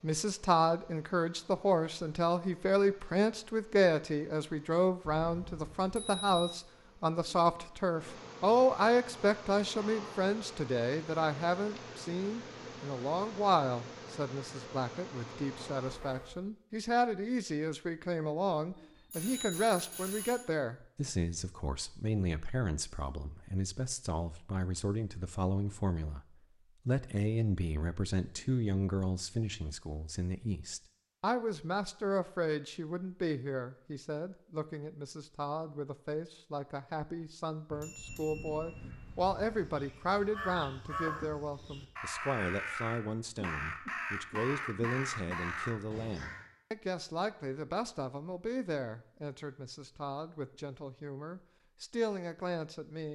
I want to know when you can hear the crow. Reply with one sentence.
The crow can be heard from 38.9 to 46.5 s.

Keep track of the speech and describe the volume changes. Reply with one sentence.
The loudness of the speech goes down.